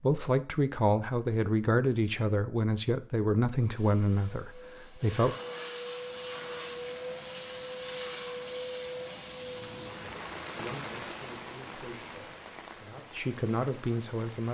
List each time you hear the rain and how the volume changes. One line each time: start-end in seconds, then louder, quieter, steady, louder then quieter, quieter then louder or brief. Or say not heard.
6.0-14.5 louder then quieter.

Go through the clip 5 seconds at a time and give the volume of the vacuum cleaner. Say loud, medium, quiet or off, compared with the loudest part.
quiet, loud, off.